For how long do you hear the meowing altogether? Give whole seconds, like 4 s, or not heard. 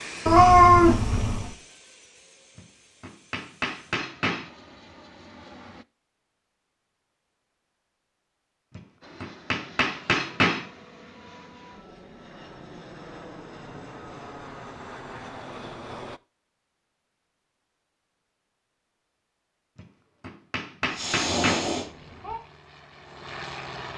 3 s.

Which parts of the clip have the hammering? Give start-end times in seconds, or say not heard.
2.5-4.5, 8.8-10.7, 19.8-21.7.